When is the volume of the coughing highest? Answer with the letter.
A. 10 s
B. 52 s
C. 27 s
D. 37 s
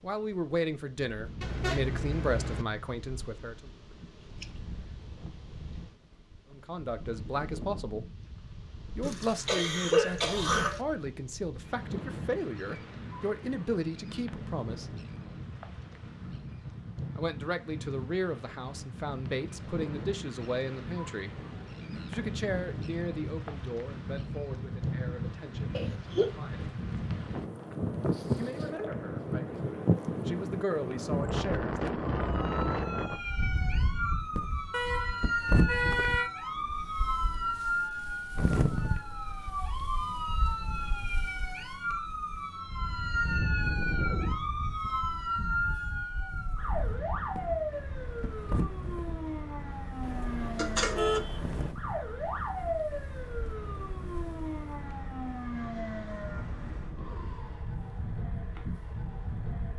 A.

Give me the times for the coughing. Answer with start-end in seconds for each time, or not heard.
9.0-10.8, 25.8-26.3, 50.5-51.2.